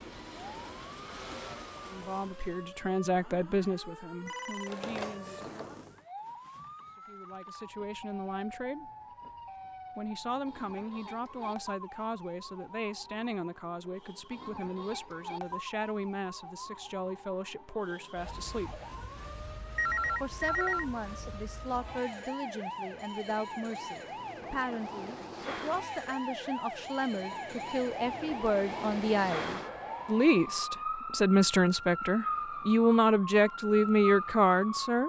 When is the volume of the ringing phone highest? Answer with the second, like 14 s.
20 s.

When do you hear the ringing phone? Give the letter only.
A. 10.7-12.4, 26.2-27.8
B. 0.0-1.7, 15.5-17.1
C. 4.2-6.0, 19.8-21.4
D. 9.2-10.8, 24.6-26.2
C.